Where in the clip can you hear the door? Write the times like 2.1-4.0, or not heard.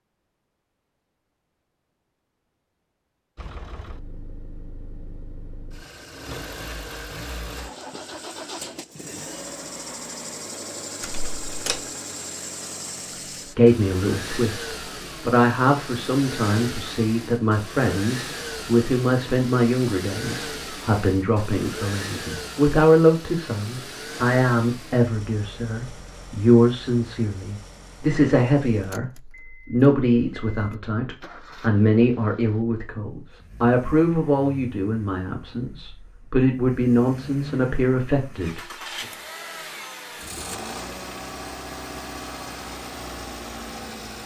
11.0-11.9.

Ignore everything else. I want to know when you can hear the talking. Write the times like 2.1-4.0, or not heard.
13.6-39.0.